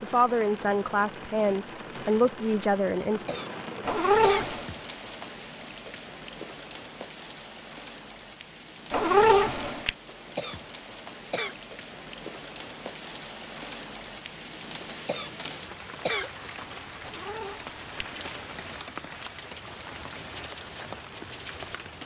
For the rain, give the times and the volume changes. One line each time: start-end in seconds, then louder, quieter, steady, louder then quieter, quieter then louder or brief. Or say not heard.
0.0-22.0 steady.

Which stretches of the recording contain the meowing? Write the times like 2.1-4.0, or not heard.
3.9-4.7, 8.9-9.9, 17.1-18.8.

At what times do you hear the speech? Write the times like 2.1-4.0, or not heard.
0.0-3.4.